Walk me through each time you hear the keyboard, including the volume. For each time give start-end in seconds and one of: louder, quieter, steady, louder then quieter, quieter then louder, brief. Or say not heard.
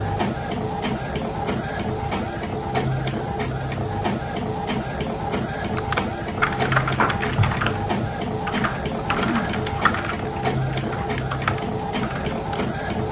5.7-12.4 quieter.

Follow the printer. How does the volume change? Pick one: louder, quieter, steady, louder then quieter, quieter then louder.
steady.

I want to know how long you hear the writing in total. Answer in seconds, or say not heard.
not heard.